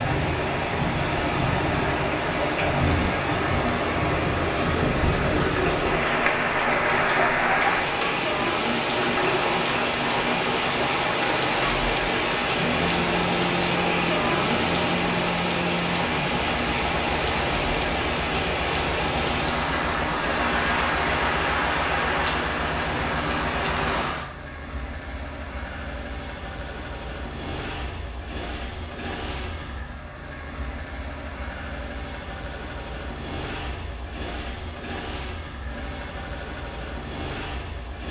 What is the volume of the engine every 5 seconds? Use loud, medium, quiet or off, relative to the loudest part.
loud, loud, loud, loud, loud, medium, medium, medium.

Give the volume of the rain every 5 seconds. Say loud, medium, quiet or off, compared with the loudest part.
loud, loud, loud, loud, loud, off, off, off.